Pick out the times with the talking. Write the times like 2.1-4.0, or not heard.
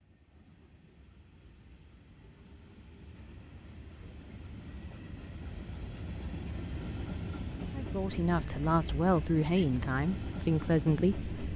7.8-11.3.